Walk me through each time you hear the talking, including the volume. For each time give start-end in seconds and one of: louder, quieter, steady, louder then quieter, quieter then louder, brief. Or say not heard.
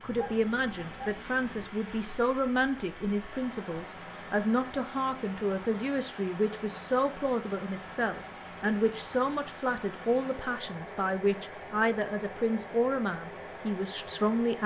0.0-14.6 steady.